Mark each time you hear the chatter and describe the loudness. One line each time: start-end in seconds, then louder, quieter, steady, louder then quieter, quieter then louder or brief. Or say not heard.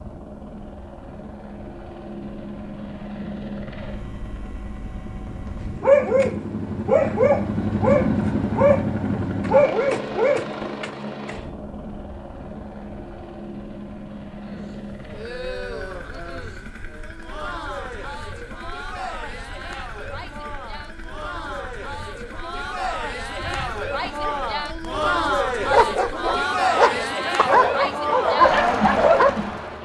14.4-29.7 louder.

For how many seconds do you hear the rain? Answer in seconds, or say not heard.
not heard.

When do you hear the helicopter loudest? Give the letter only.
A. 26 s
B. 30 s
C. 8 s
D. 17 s
C.